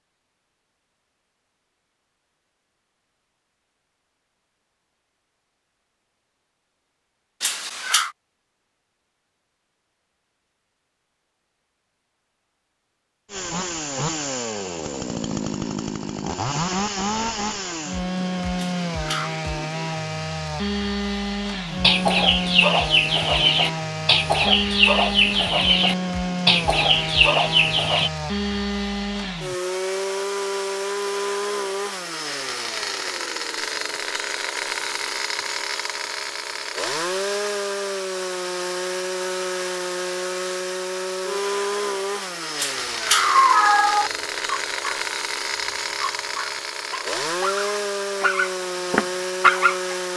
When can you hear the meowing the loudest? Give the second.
44 s.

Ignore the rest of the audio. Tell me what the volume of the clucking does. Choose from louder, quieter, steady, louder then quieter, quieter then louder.
steady.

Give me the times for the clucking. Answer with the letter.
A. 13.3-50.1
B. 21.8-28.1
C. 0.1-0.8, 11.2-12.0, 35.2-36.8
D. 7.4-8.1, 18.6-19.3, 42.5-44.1
B.